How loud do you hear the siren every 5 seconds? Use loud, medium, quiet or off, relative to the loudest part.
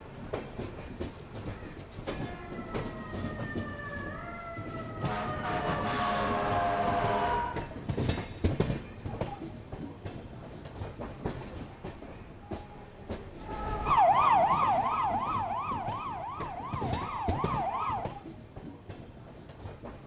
quiet, medium, loud, medium.